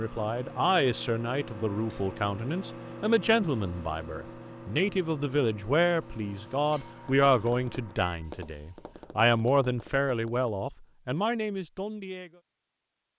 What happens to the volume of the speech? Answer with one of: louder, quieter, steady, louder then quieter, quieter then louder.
steady.